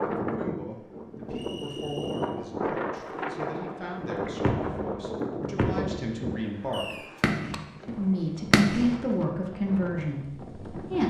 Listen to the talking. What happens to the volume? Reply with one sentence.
The volume of the talking goes up.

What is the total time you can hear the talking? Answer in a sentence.
You can hear the talking for 10 seconds altogether.